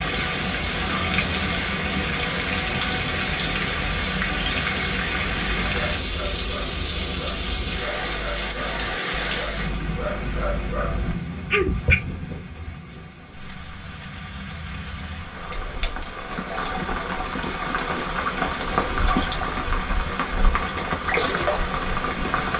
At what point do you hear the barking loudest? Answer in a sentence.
The loudest moment of the barking is at 12 seconds.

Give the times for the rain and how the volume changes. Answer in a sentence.
You can hear the rain from 0.0 to 22.5 s, getting quieter then louder.